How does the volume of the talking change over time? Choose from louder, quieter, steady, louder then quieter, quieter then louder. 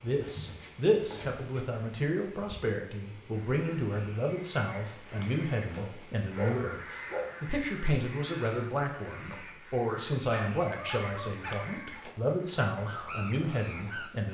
steady.